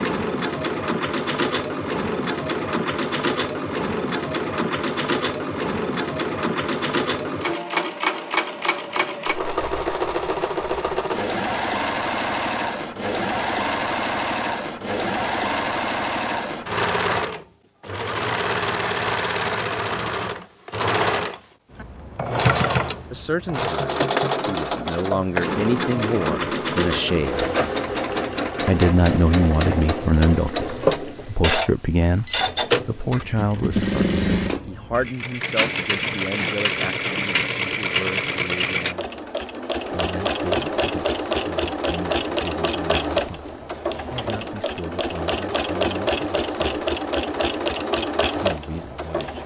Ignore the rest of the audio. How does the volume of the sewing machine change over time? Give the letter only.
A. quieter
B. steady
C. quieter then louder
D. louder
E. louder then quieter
B.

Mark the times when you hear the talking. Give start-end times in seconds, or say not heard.
23.1-27.5, 28.6-39.1, 39.9-46.8, 48.4-49.4.